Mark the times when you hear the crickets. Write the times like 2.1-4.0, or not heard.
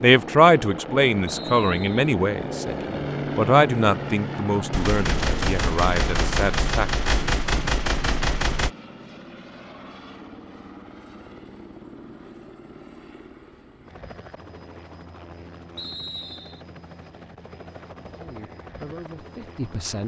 not heard.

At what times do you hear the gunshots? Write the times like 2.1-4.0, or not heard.
4.7-8.7.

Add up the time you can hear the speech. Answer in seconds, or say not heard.
9 s.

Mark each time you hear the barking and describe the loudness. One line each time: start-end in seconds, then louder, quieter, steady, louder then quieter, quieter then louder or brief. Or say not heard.
not heard.